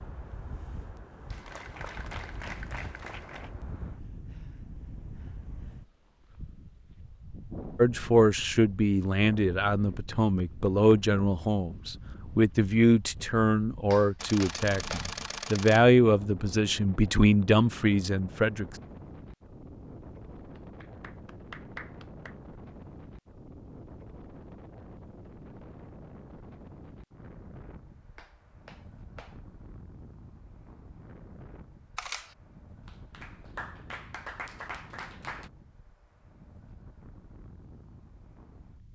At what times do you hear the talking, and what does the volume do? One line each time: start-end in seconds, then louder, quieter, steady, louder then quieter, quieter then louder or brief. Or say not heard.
7.8-18.6 steady.